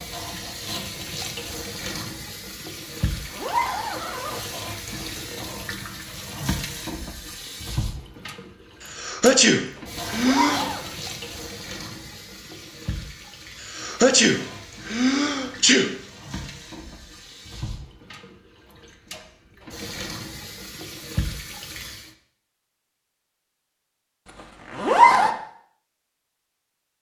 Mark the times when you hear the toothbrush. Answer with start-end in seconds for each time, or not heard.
not heard.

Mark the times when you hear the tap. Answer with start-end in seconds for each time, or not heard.
0.0-22.1.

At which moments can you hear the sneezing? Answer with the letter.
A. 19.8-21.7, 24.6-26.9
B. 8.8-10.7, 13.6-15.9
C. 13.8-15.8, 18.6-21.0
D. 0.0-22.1
B.